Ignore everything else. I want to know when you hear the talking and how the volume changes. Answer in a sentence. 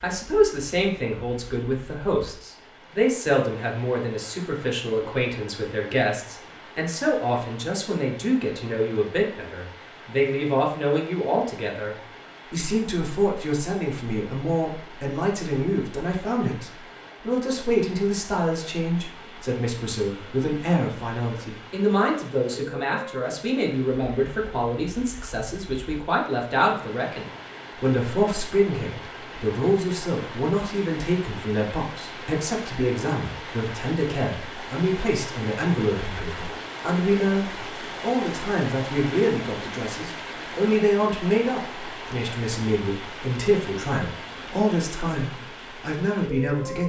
You can hear the talking from 0.0 to 46.8 s, at a steady volume.